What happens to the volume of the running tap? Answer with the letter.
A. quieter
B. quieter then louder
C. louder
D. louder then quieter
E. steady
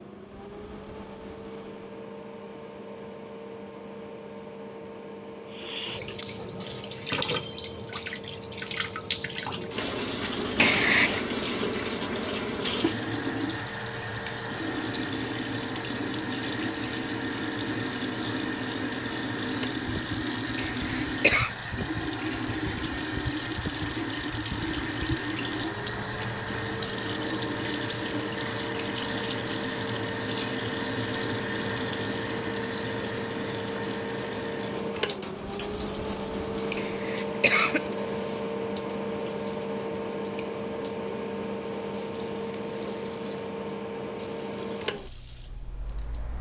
A.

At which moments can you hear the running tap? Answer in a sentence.
You can hear the running tap from 5.5 to 46.3 s.